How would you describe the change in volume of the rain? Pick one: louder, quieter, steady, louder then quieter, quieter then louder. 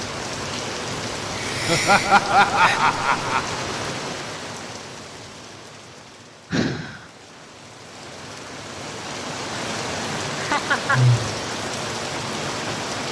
quieter then louder.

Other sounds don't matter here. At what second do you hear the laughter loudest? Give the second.
2 s.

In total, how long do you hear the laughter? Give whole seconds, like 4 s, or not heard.
3 s.